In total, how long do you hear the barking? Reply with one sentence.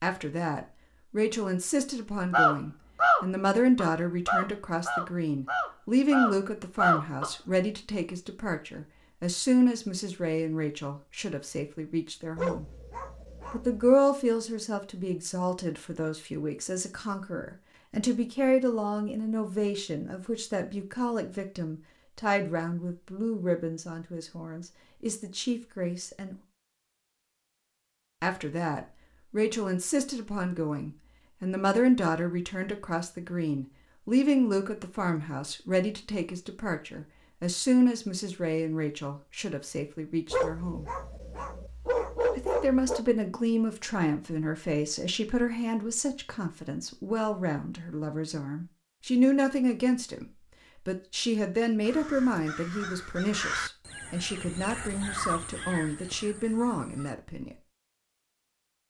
The barking can be heard for 4 seconds in total.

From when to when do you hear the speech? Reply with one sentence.
The speech can be heard from 0.0 to 12.7 s, from 13.5 to 26.4 s, from 28.2 to 40.9 s and from 42.4 to 57.6 s.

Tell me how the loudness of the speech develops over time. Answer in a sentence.
The loudness of the speech stays about the same.